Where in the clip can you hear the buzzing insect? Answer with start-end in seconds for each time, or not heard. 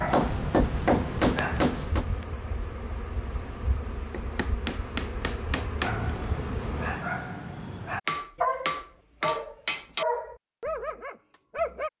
0.0-7.1.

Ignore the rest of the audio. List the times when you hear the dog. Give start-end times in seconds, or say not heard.
0.0-1.9, 5.8-11.9.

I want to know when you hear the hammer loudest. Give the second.
1 s.